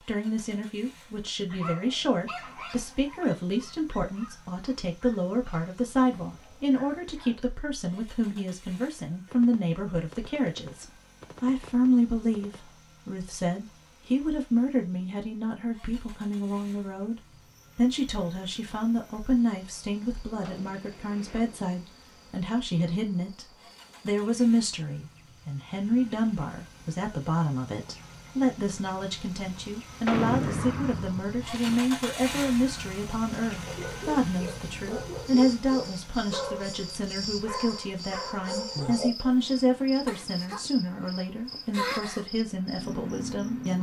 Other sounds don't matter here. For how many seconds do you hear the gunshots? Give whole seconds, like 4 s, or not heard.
7 s.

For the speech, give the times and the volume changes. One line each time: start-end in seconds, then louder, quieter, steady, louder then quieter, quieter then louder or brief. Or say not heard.
0.0-43.7 steady.